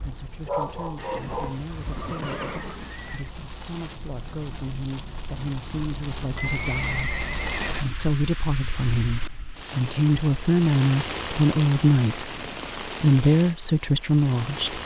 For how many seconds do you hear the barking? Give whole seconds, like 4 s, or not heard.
2 s.